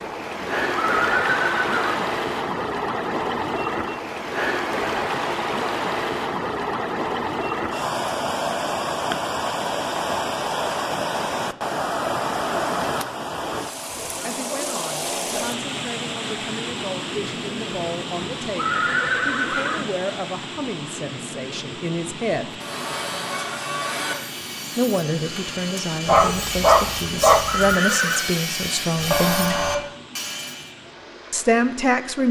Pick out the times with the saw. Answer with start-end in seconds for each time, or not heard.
22.4-30.7.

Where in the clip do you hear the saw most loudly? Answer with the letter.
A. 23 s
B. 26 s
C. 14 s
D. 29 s
D.